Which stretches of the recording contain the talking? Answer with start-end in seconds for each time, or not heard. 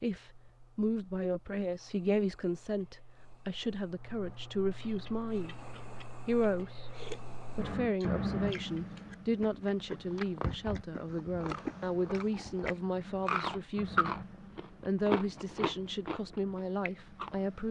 0.0-5.6, 6.2-6.9, 7.5-14.1, 14.8-17.6.